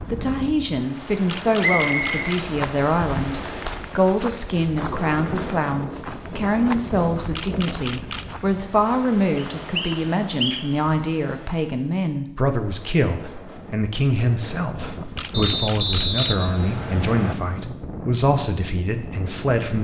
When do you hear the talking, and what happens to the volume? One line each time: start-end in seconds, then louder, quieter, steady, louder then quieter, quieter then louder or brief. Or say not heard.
0.0-19.7 steady.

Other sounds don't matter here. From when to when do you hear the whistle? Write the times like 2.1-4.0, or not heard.
1.6-2.1, 9.3-10.8, 15.3-17.4.